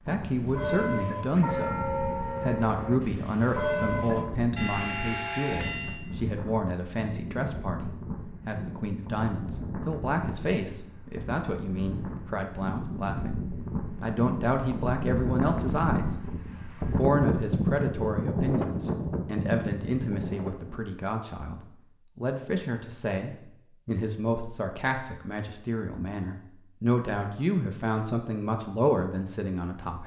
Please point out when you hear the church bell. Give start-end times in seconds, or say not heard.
0.4-6.0.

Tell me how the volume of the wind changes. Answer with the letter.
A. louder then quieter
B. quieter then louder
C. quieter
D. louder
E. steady
D.